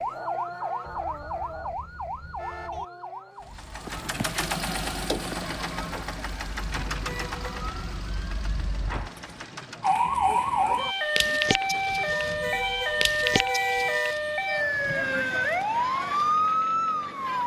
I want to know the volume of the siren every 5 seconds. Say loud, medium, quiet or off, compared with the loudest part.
medium, medium, loud, loud.